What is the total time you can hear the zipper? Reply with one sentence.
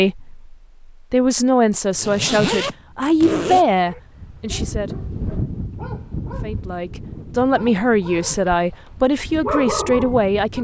You can hear the zipper for 2 seconds altogether.